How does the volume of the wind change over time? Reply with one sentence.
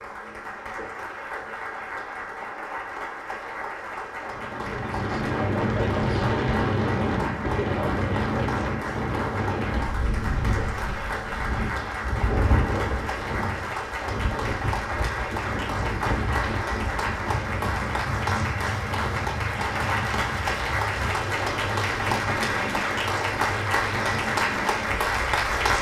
The loudness of the wind goes down.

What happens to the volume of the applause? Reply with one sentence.
The volume of the applause goes up.